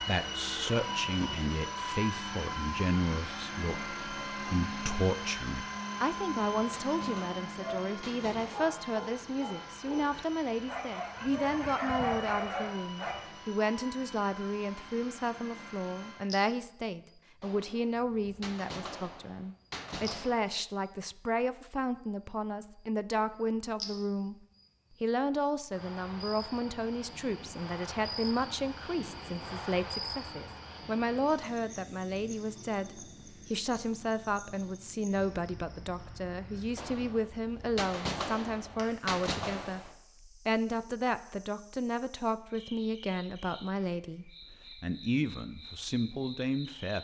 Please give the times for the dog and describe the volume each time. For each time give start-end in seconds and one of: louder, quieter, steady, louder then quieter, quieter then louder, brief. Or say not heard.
7.5-13.2 louder.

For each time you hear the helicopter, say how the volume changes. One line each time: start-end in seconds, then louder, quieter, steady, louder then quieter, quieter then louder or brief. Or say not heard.
0.0-16.4 quieter.